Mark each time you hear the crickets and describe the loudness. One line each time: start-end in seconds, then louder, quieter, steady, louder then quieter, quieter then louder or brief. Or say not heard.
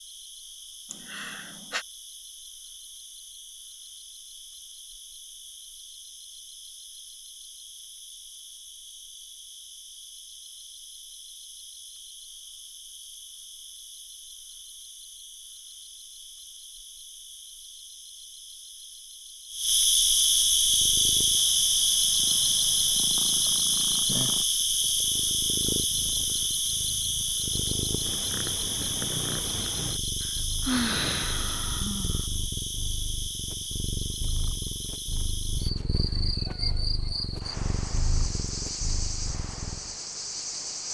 0.0-40.8 louder then quieter.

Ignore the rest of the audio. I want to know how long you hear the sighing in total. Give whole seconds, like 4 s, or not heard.
3 s.